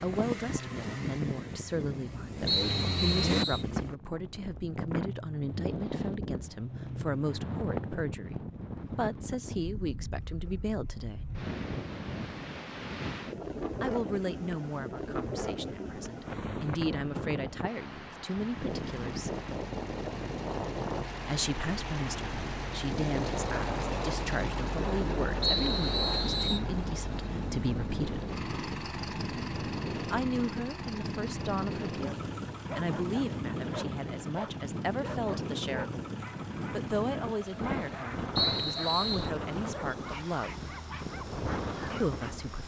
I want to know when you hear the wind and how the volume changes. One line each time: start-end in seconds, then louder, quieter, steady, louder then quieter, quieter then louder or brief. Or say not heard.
0.0-42.6 steady.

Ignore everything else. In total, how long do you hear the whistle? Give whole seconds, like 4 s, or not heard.
3 s.